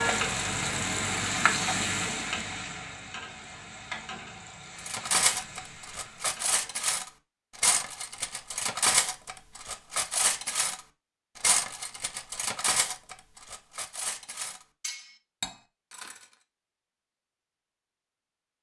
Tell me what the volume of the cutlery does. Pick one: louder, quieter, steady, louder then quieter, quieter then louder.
quieter.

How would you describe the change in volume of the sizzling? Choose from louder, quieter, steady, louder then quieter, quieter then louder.
quieter.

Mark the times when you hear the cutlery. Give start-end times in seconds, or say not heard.
4.8-16.2.